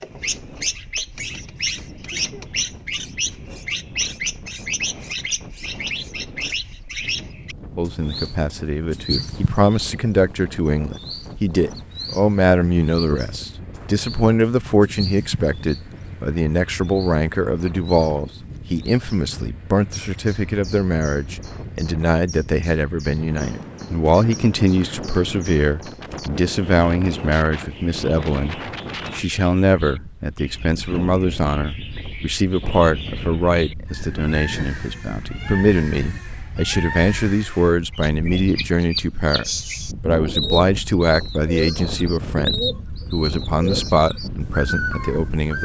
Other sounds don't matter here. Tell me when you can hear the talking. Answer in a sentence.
The talking can be heard from 7.8 to 45.6 s.